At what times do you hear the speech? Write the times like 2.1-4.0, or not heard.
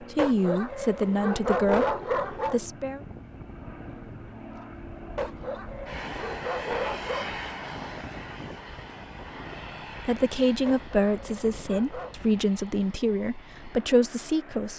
0.0-3.0, 10.1-14.7.